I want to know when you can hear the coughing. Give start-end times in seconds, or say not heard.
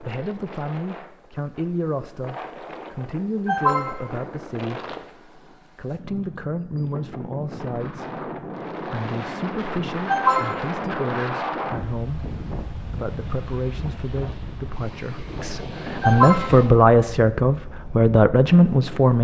3.5-4.0, 10.1-10.7, 16.0-16.6.